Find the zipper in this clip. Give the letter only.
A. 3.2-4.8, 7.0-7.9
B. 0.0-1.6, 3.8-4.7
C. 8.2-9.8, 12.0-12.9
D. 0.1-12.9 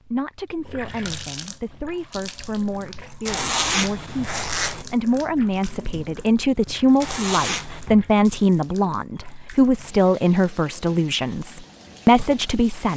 A.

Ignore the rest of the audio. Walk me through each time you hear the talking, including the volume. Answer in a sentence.
You can hear the talking from 0.1 to 12.9 s, getting louder.